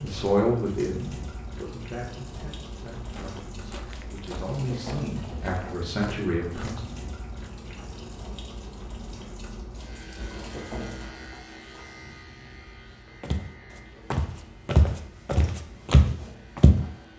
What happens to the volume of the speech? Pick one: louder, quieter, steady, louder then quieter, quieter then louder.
quieter then louder.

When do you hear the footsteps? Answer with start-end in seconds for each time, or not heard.
3.0-6.8, 13.2-16.9.